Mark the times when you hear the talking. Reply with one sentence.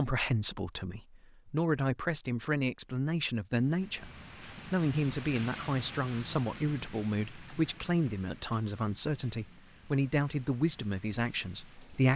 You can hear the talking from 0.0 to 12.1 s.